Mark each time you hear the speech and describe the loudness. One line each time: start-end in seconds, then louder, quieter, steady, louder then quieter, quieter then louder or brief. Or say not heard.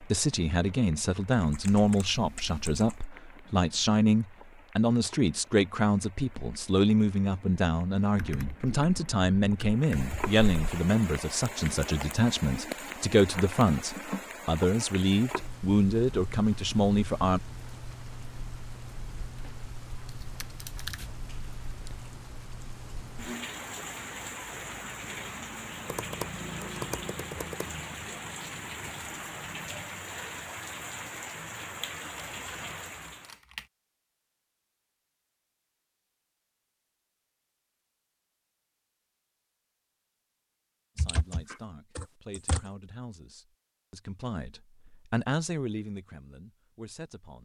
0.0-17.4 steady
41.0-47.4 louder then quieter.